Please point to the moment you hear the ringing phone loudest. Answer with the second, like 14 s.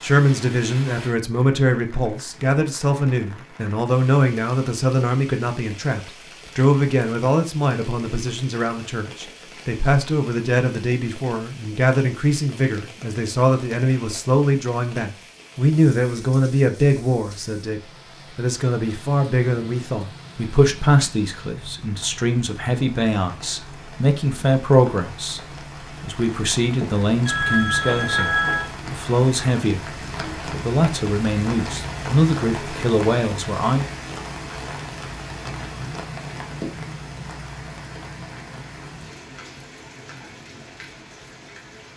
28 s.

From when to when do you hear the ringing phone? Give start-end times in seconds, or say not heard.
26.8-28.7.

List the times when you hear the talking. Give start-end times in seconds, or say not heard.
0.0-25.4, 26.0-33.9.